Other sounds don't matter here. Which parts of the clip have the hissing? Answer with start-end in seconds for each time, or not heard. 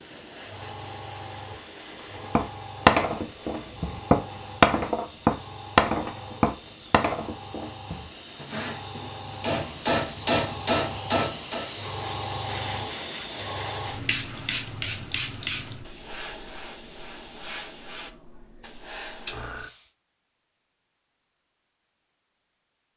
0.0-19.9.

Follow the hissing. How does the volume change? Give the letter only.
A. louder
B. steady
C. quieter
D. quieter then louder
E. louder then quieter
E.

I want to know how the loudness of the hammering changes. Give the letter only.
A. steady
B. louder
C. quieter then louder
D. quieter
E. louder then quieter
C.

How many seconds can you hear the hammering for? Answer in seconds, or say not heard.
9 s.